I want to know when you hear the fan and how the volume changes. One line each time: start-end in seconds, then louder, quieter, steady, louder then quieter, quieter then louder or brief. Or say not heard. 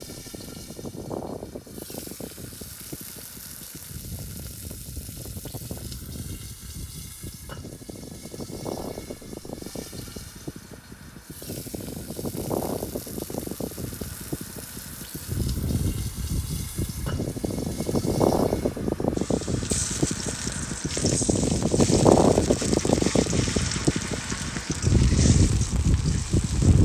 0.0-26.8 louder.